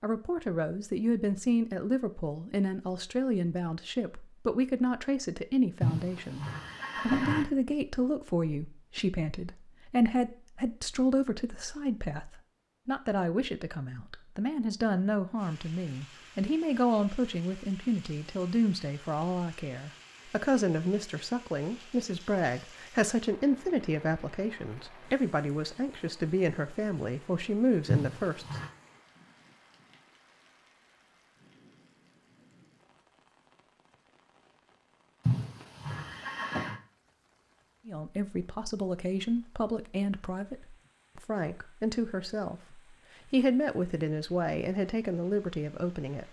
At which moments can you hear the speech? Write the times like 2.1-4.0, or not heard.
0.0-28.4, 37.9-46.2.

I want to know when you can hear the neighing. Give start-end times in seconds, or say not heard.
5.8-7.5, 27.9-28.7, 35.2-36.8.